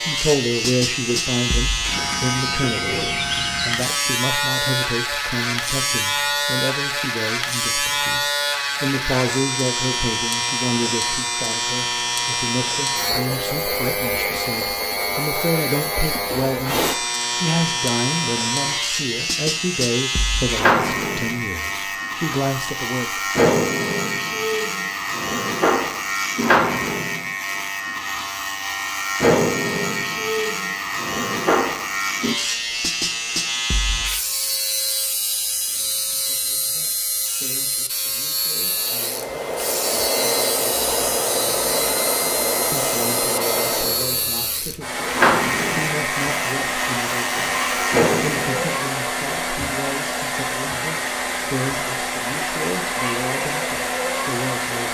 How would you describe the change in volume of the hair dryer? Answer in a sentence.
The volume of the hair dryer stays about the same.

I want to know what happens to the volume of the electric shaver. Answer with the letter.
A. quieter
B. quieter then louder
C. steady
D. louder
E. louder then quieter
C.